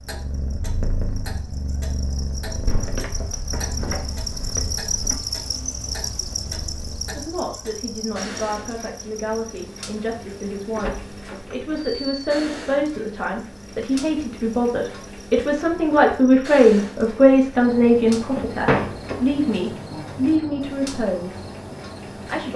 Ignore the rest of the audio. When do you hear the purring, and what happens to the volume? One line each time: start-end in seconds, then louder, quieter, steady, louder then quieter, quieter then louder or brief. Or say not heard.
0.0-7.3 quieter.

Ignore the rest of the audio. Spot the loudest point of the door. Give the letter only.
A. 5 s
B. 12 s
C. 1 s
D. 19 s
D.